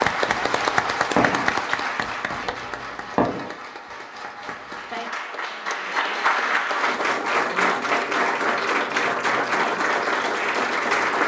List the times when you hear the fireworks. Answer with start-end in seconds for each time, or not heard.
0.2-4.6.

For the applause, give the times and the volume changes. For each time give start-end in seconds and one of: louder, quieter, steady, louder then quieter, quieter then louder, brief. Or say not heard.
0.0-11.2 quieter then louder.